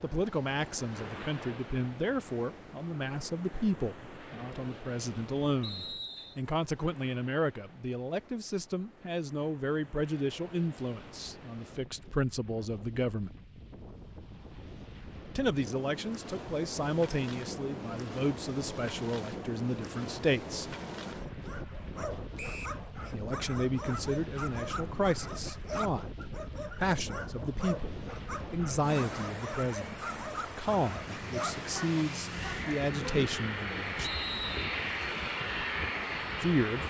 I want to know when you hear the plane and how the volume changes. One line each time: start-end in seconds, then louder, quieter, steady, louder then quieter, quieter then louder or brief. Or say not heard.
29.2-36.8 louder.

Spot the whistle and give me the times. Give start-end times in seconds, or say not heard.
5.6-6.3, 22.4-22.8, 34.0-34.7.